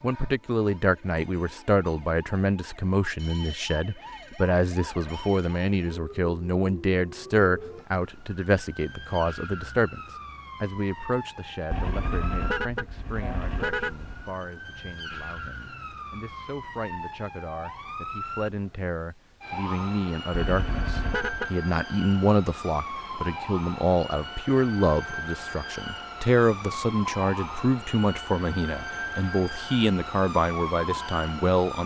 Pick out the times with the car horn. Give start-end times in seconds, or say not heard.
11.7-14.3, 20.4-21.5.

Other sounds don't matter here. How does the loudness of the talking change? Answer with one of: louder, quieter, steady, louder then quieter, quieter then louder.
quieter then louder.